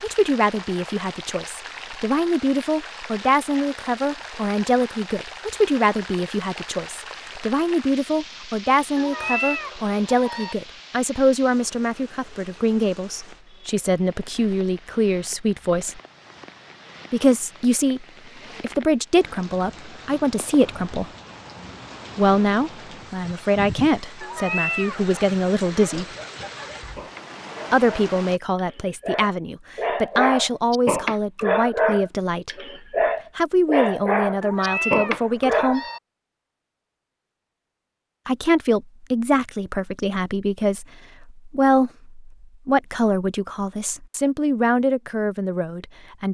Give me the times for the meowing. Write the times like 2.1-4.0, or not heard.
8.9-10.6, 24.2-25.1, 34.4-36.0.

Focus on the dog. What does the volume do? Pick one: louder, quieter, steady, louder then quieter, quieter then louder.
louder.